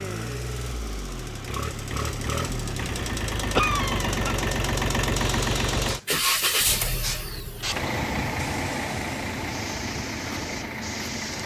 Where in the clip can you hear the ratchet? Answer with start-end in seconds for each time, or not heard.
not heard.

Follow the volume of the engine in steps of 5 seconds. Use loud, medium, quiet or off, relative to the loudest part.
loud, loud, medium.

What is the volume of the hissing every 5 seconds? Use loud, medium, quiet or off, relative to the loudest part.
off, loud, loud.